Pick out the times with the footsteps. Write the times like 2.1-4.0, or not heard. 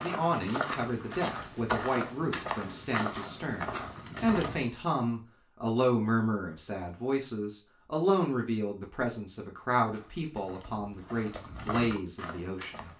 0.0-4.7, 9.8-12.9.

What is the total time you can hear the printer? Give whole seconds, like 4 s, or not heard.
not heard.